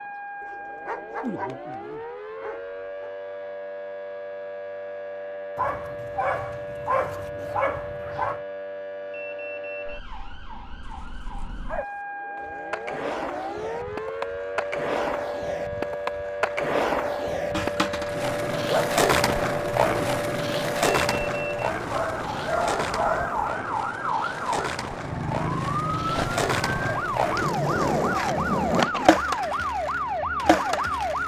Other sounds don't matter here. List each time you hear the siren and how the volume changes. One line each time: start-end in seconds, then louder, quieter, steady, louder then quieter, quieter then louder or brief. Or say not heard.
0.0-31.2 louder.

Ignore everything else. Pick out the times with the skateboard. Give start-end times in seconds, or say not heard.
12.3-31.2.